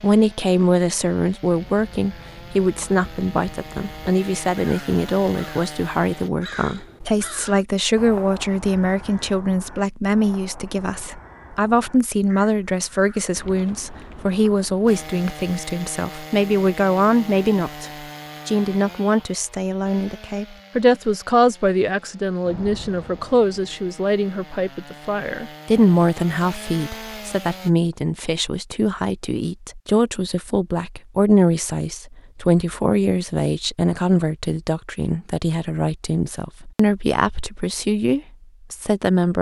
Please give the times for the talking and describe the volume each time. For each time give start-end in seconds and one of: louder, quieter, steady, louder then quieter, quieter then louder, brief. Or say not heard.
0.0-39.3 steady.